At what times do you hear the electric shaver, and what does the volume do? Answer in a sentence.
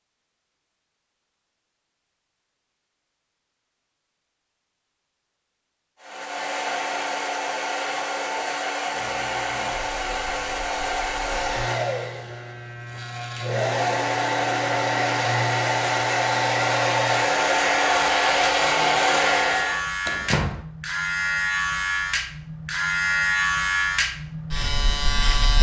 The electric shaver can be heard from 8.9 to 25.5 s, getting louder.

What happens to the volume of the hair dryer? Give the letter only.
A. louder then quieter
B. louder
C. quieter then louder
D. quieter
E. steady
B.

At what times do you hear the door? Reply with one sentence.
You can hear the door from 20.1 to 20.6 s.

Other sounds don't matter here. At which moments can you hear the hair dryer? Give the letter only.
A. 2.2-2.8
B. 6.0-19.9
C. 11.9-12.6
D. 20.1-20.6
B.